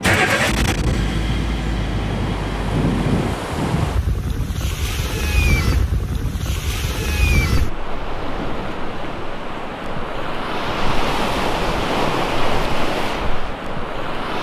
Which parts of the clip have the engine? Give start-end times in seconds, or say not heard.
0.0-3.2.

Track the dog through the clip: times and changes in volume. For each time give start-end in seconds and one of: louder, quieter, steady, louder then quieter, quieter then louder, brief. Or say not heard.
not heard.